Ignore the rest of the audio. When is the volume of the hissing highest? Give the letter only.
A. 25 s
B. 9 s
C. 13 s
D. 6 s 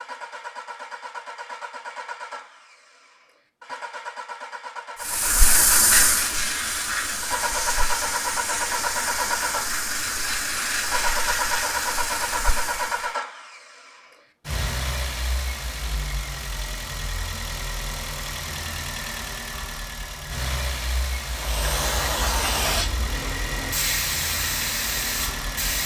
D.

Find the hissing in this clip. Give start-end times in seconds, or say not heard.
5.0-13.2, 21.3-25.8.